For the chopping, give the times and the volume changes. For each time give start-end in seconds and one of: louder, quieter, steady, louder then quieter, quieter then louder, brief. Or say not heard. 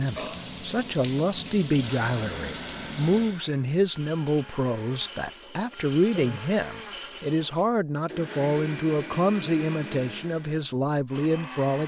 not heard.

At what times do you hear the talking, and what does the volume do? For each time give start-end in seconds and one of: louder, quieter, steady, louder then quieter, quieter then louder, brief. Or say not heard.
0.0-11.8 steady.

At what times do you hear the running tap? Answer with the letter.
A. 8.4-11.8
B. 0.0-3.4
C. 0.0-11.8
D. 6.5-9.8
B.